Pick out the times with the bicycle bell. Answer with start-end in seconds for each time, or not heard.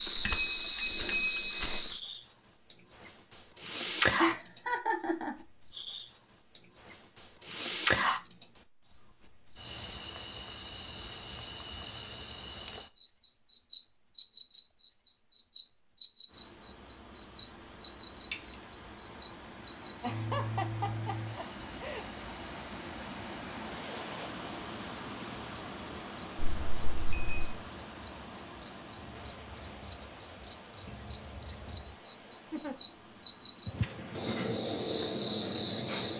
0.2-1.6, 18.3-18.9, 26.4-27.6.